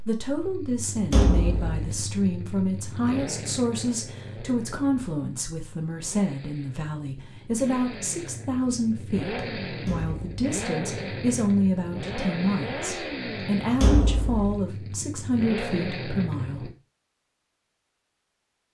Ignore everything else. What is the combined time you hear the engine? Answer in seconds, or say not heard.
17 s.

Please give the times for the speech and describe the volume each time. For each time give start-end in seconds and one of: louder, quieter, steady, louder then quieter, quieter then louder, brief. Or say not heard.
0.1-16.7 steady.